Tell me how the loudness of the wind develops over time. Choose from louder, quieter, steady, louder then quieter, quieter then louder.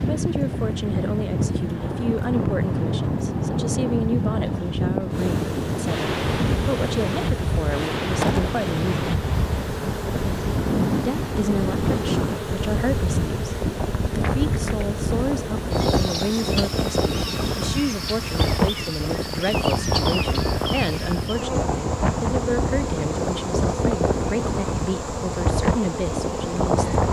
steady.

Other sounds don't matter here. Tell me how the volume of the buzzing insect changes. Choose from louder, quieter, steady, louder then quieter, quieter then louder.
steady.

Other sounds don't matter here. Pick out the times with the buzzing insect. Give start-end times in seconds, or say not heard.
5.1-27.0.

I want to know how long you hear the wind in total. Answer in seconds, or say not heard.
27 s.